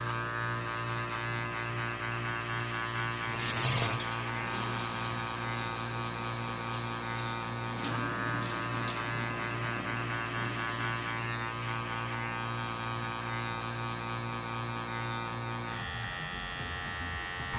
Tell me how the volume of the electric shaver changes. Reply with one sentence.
The loudness of the electric shaver stays about the same.